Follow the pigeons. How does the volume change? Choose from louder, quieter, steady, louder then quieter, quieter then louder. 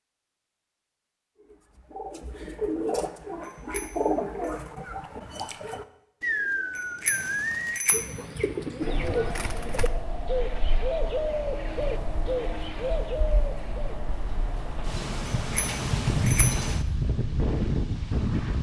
steady.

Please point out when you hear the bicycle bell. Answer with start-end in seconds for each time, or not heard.
3.4-4.5, 6.8-8.1, 15.5-16.7.